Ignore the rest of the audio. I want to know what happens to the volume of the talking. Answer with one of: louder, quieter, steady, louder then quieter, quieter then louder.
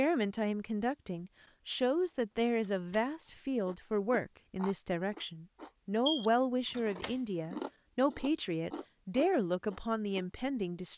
steady.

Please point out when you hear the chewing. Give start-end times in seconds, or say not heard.
3.6-10.2.